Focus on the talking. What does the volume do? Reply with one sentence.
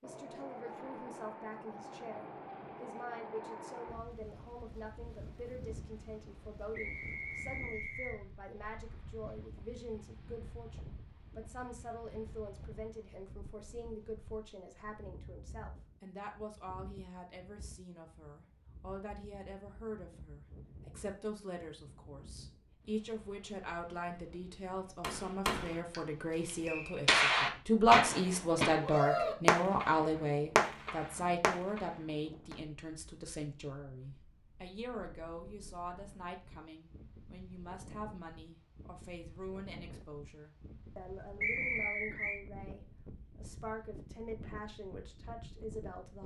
The volume of the talking goes up, then down.